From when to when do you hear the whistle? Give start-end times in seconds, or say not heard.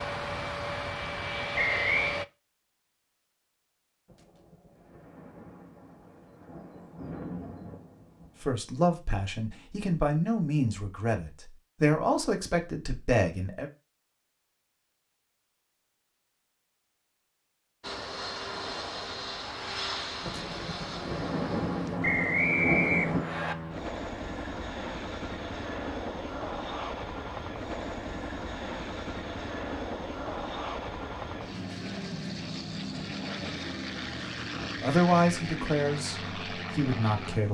1.6-2.2, 22.0-23.6.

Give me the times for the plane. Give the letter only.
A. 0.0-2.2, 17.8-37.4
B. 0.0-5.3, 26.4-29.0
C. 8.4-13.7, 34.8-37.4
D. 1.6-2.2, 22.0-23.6
A.